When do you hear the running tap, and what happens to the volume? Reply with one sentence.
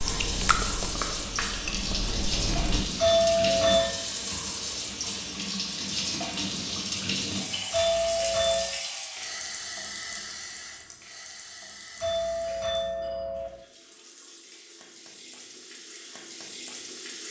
The running tap can be heard from 0.0 to 17.2 s, getting quieter.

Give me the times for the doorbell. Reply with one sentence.
You can hear the doorbell from 3.0 to 3.9 s, from 7.7 to 8.7 s and from 12.0 to 13.5 s.